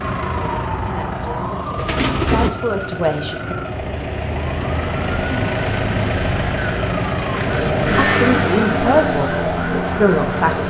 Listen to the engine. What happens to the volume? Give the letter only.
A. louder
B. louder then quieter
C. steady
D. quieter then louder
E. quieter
A.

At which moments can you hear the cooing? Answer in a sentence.
You can hear the cooing from 1.8 to 2.5 s and from 6.7 to 8.6 s.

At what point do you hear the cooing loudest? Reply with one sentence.
The loudest moment of the cooing is at 2 seconds.